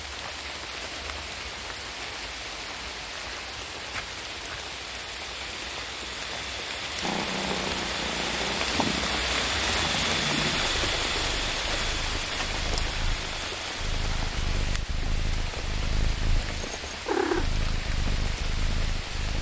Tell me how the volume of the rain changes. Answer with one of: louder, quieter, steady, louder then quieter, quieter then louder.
louder then quieter.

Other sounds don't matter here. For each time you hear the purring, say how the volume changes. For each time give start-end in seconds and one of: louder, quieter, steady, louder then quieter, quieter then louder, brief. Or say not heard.
7.0-19.3 quieter then louder.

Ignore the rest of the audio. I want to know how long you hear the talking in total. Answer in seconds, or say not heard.
not heard.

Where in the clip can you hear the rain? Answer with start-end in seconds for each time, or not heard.
0.0-19.3.